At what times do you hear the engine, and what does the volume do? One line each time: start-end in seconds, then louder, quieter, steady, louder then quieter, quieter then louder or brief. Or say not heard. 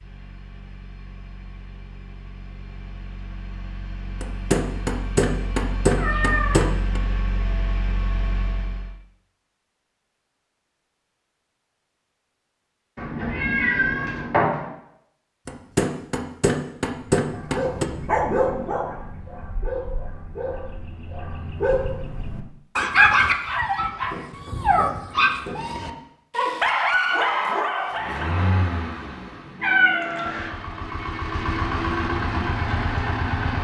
0.0-8.9 louder
27.9-33.5 quieter then louder.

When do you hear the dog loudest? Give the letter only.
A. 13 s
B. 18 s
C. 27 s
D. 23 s
D.